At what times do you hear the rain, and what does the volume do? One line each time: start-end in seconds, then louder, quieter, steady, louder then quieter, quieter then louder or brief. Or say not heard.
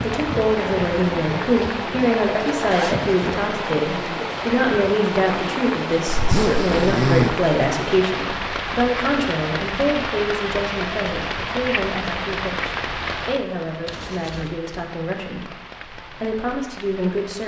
0.0-17.4 quieter.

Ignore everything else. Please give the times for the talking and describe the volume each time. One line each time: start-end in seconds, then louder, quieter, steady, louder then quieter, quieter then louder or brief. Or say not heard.
0.0-17.4 quieter.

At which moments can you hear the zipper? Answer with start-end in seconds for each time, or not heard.
2.5-3.1, 6.1-7.3, 13.8-14.6.